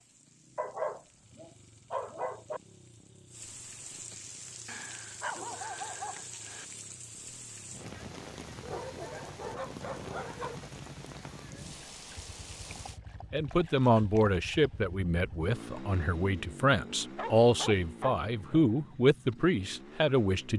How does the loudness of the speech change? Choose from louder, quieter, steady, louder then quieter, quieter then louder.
quieter then louder.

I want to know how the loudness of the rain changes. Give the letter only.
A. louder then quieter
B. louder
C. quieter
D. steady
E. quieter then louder
B.